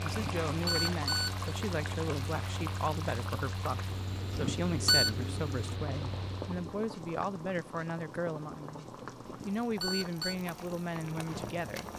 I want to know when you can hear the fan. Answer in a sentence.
The fan can be heard from 0.0 to 6.8 s.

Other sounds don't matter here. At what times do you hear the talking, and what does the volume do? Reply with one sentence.
You can hear the talking from 0.0 to 8.8 s, at a steady volume; and briefly from 9.4 to 11.9 s.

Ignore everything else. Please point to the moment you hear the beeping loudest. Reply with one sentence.
The volume of the beeping peaks at 5 seconds.